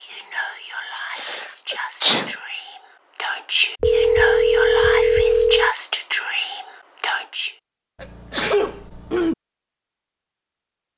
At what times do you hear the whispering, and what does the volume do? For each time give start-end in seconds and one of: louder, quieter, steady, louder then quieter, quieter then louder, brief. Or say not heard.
0.0-7.5 louder.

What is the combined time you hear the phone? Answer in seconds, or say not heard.
2 s.